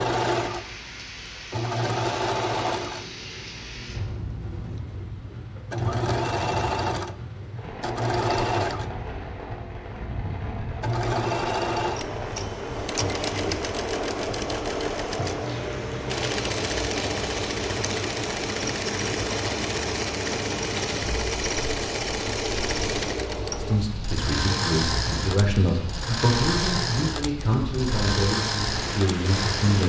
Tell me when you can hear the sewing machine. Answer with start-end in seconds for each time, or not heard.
0.0-29.8.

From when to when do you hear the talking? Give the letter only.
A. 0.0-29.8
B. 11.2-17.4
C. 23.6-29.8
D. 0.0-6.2
C.